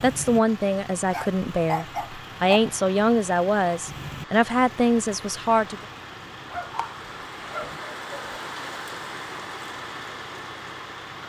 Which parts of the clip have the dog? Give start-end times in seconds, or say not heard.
1.1-2.6, 6.5-8.4.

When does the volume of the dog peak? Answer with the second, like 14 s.
2 s.